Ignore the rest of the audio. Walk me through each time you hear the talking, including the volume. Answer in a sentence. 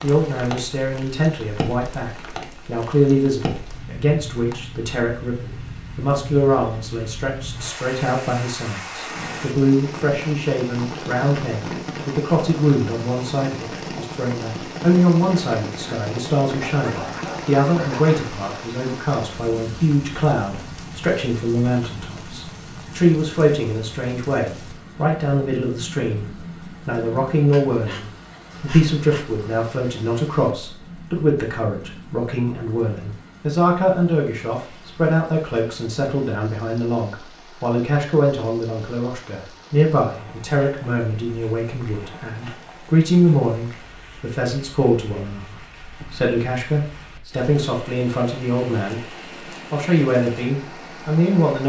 The talking can be heard from 0.0 to 49.0 s, at a steady volume; and briefly from 49.7 to 51.6 s.